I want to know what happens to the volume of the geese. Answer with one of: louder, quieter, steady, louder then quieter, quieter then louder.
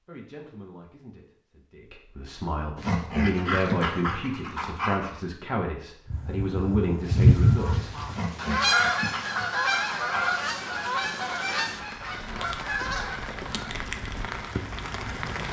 quieter.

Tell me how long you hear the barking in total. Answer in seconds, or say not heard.
5 s.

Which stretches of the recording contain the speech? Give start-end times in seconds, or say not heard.
0.1-7.9.